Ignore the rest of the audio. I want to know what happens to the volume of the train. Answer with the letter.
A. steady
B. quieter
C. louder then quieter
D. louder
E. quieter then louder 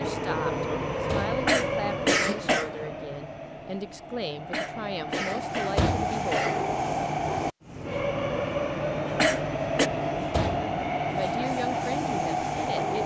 E.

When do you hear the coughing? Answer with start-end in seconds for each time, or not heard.
1.4-2.7, 4.5-6.7, 9.2-9.9.